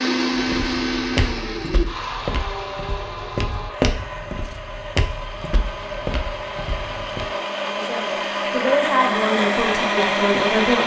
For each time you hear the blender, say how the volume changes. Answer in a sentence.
You can hear the blender from 0.0 to 10.8 s, getting quieter then louder.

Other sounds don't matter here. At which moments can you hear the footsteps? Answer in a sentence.
You can hear the footsteps from 0.3 to 7.2 s.